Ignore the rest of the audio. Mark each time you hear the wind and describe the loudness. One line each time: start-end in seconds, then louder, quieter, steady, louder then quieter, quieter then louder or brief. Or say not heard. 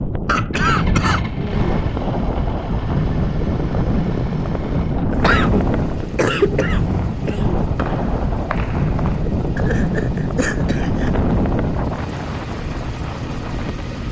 0.0-14.0 steady.